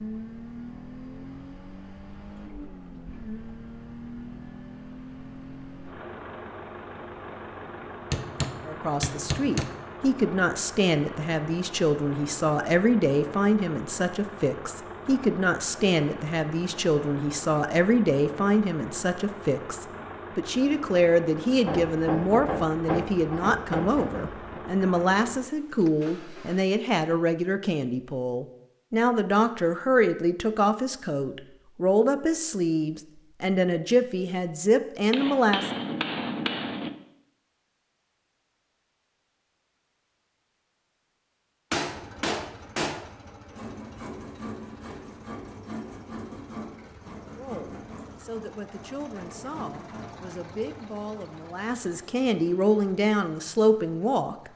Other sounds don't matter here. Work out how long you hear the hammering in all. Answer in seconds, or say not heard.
8 s.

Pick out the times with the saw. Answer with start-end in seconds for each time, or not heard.
43.5-50.0.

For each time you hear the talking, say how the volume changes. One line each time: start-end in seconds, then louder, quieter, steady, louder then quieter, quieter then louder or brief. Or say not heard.
8.7-35.8 steady
47.4-54.5 louder.